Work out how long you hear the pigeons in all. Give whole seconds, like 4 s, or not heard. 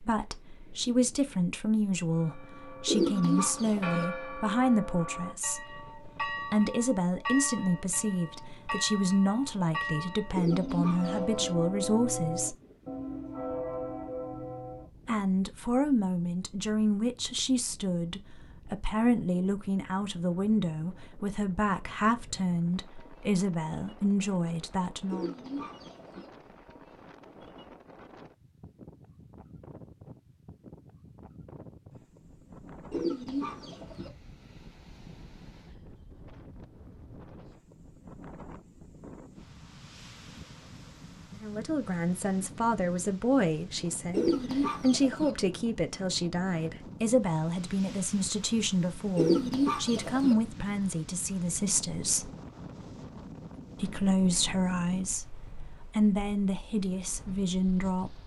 7 s.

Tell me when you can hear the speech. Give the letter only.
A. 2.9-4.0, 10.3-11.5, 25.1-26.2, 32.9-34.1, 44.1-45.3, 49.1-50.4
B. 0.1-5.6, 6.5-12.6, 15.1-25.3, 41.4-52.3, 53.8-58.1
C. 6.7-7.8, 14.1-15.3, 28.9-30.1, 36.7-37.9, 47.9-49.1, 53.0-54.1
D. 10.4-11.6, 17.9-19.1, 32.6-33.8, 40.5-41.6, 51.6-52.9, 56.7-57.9
B.